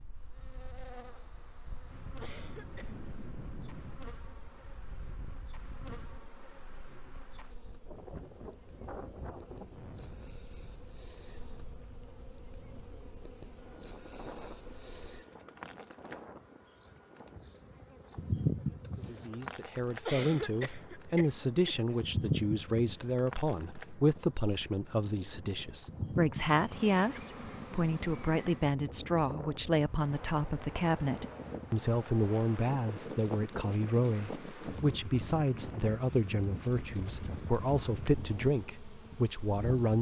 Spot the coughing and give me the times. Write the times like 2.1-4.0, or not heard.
2.2-3.1, 20.1-21.9.